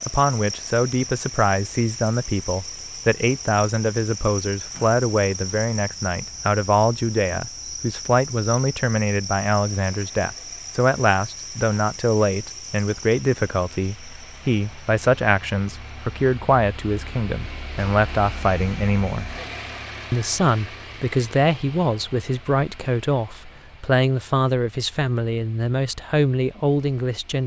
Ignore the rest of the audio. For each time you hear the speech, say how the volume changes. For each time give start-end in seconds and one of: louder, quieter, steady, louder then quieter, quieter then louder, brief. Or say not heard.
0.1-19.3 steady
20.1-27.4 steady.